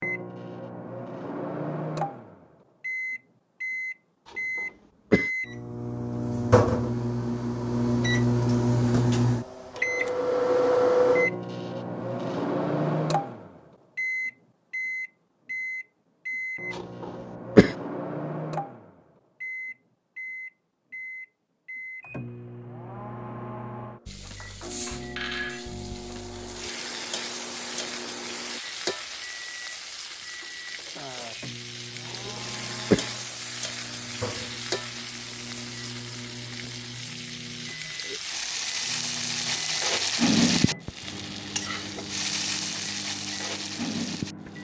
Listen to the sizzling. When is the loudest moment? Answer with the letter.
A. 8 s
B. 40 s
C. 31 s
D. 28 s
B.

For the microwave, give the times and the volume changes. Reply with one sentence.
The microwave can be heard from 0.0 to 44.5 s, getting quieter.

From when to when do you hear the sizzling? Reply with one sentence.
The sizzling can be heard from 24.1 to 44.5 s.